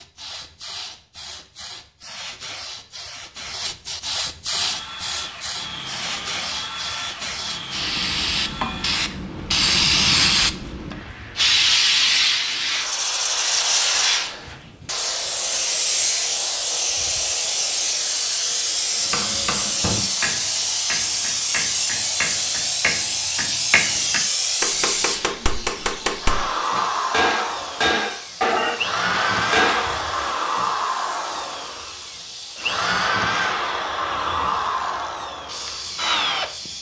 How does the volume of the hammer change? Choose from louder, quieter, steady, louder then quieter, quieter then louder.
louder.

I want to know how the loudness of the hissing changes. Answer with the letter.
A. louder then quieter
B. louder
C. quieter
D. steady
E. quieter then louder
A.